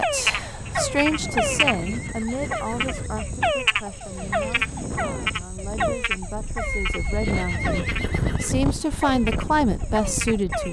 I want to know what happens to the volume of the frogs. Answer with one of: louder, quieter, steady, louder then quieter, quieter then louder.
quieter.